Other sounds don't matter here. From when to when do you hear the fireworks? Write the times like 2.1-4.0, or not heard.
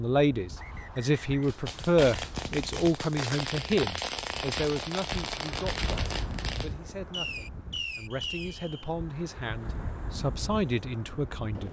1.4-8.6.